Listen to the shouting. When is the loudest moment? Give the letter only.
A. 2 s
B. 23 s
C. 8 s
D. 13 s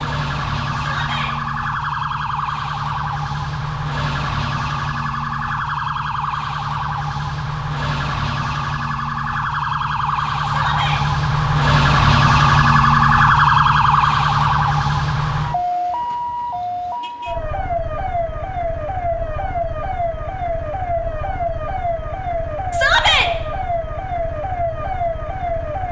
B.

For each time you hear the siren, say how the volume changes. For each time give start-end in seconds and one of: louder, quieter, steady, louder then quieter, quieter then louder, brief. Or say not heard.
0.0-25.8 louder then quieter.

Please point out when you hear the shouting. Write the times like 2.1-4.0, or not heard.
0.8-1.4, 10.4-11.1, 22.7-23.3.